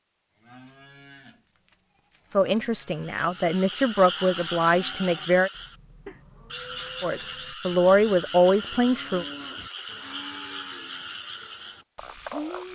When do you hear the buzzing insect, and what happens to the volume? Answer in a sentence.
You can't hear the buzzing insect here.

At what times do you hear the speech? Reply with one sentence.
The speech can be heard from 2.4 to 5.5 s and from 7.0 to 9.2 s.